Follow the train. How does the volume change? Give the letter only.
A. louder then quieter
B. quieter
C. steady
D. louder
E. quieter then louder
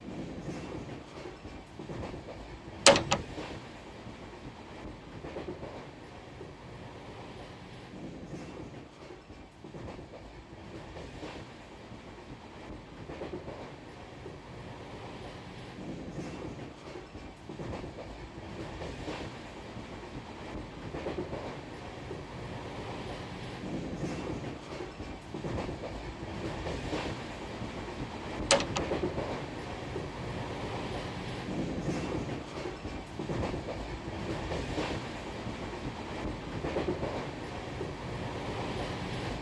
D.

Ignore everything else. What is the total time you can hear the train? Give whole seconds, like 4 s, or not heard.
39 s.